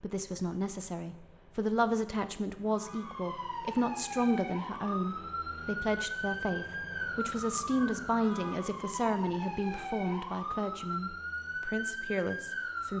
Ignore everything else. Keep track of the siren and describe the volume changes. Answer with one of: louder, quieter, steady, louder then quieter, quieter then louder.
steady.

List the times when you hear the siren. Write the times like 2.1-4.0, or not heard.
2.6-12.9.